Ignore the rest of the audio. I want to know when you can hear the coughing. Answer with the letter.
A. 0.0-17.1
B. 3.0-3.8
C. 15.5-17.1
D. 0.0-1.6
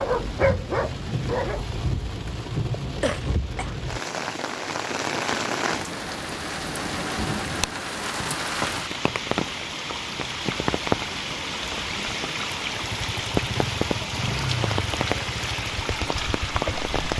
B.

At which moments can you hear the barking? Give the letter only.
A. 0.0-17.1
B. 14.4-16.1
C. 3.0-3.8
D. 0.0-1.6
D.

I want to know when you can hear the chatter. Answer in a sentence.
The chatter can't be heard in this clip.